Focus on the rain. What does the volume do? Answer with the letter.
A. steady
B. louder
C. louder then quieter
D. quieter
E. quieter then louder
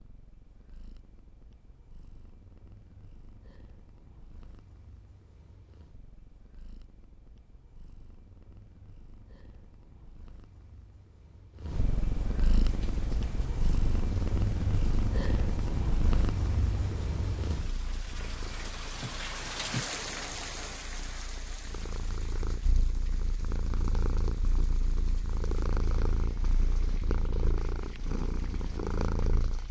C.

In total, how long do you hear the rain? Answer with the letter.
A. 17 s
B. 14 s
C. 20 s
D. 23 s
A.